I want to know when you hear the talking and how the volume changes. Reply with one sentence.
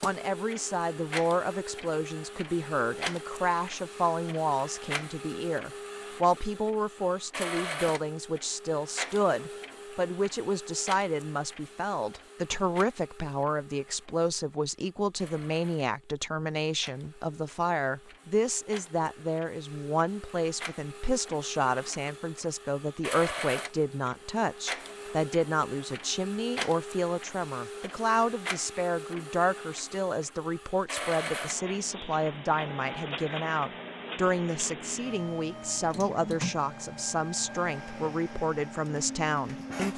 The talking can be heard from 0.0 to 39.9 s, at a steady volume.